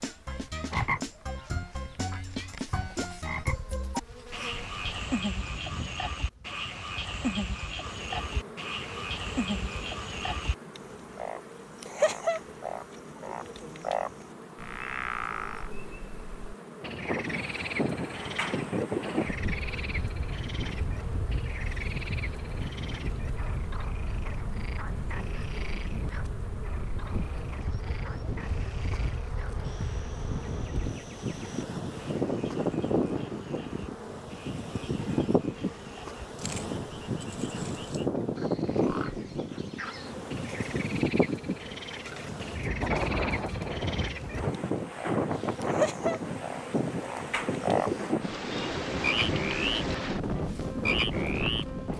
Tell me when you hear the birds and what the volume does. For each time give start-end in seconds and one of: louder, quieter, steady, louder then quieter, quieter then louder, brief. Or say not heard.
not heard.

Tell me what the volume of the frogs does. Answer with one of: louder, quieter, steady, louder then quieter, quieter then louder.
quieter then louder.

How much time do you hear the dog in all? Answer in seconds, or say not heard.
not heard.